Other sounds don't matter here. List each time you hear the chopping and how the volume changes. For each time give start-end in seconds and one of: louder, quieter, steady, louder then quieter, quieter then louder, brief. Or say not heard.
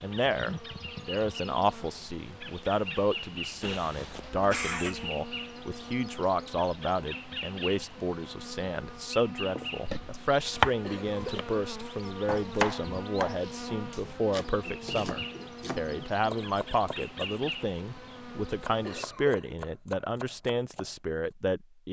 9.6-20.9 quieter.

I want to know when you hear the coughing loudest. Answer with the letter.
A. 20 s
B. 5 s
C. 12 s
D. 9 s
B.